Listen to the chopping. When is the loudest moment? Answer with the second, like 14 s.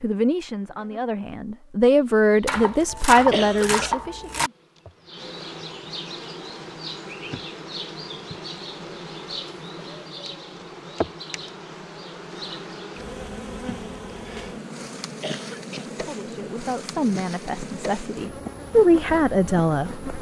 3 s.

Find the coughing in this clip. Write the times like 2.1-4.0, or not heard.
3.3-4.0, 15.2-15.9.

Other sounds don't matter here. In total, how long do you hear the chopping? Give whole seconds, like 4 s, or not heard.
2 s.